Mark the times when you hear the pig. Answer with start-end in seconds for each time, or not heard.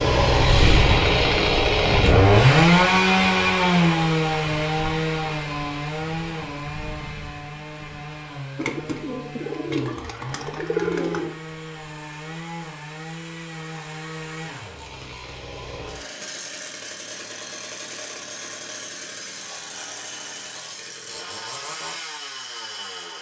not heard.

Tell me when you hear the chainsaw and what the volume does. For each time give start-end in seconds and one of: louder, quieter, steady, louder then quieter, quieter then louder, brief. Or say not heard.
0.0-23.1 quieter.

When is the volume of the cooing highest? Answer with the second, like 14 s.
11 s.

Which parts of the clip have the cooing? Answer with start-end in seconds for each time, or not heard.
8.6-11.3.